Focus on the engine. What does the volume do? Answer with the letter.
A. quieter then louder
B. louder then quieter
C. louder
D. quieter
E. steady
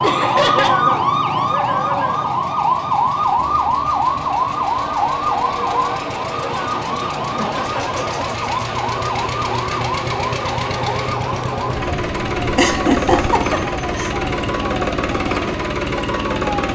C.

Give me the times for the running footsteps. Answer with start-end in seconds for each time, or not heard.
not heard.